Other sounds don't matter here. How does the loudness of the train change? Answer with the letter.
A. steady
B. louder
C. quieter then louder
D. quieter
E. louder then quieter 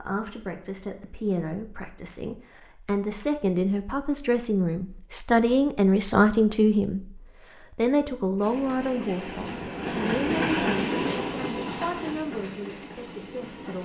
E.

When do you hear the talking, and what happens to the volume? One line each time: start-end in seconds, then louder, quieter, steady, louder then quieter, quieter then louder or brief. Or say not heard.
0.0-13.7 louder then quieter.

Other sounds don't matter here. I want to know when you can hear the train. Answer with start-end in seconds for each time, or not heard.
8.3-13.7.